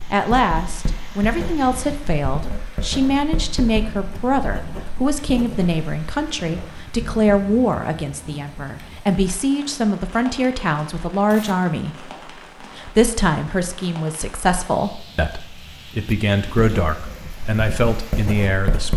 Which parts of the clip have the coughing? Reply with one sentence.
You can't hear the coughing here.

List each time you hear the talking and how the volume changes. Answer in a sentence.
You can hear the talking from 0.1 to 18.9 s, at a steady volume.